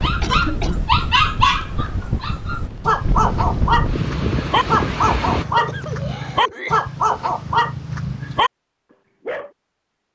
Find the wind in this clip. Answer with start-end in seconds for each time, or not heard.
0.0-5.5.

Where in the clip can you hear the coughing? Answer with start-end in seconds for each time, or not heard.
0.2-0.8, 5.2-6.8.